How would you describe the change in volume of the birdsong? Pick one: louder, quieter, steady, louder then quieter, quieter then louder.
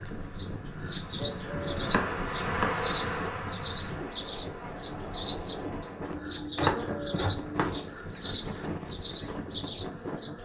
steady.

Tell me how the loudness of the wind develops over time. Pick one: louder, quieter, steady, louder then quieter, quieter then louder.
steady.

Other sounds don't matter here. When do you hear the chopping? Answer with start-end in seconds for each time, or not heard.
1.2-3.3, 6.1-7.8.